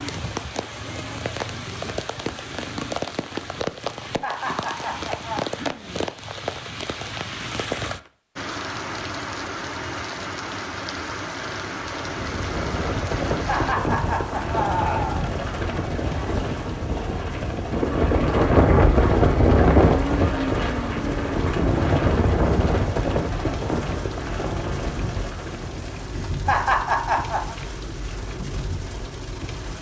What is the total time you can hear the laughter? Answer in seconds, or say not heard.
4 s.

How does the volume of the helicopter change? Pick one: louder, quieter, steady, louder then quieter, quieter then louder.
louder then quieter.